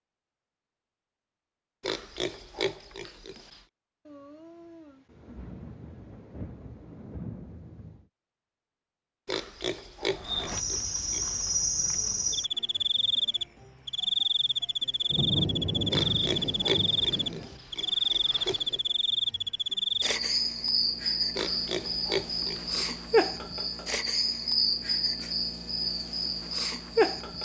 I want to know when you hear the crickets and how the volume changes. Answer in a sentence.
The crickets can be heard from 10.1 to 27.4 s, at a steady volume.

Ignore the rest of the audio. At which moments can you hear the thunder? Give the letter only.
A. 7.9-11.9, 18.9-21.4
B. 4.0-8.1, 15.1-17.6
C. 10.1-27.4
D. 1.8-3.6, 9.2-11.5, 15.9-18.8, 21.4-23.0
B.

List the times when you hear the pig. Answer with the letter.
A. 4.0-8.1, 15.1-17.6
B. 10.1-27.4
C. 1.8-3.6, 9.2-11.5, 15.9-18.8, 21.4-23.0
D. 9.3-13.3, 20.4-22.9
C.